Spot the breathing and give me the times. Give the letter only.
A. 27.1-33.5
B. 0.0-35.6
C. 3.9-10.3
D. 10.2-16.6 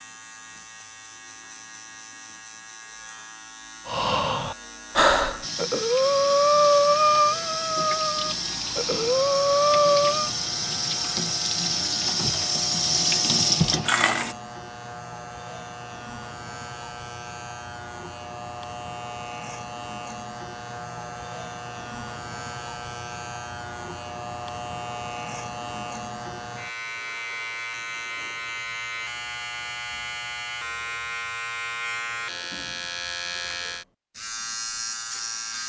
C.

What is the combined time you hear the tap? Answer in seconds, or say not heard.
9 s.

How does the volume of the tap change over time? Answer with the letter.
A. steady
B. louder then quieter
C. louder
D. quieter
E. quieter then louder
C.